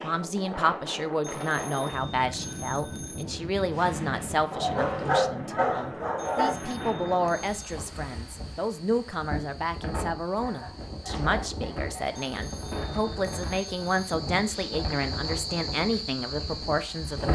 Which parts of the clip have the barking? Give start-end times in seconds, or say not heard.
4.5-6.5, 10.3-12.2.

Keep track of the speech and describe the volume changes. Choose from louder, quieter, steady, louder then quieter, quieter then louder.
steady.